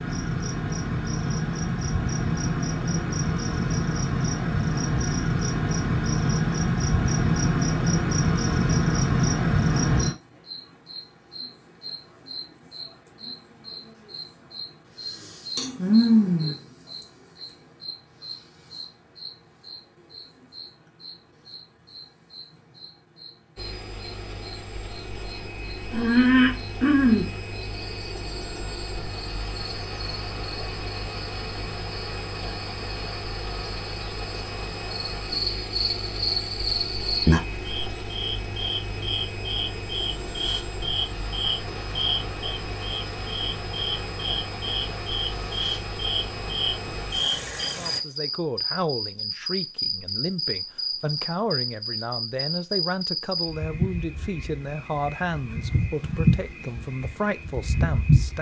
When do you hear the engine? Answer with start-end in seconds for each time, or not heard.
23.6-48.0.